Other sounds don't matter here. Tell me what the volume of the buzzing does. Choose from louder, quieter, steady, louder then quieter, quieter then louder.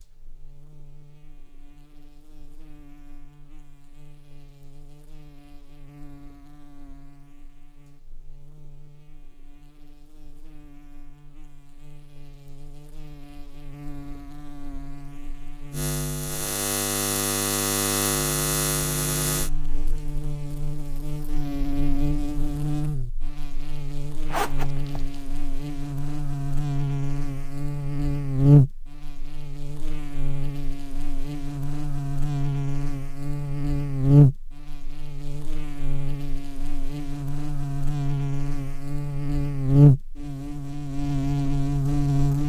louder.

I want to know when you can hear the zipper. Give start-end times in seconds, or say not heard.
24.3-25.1.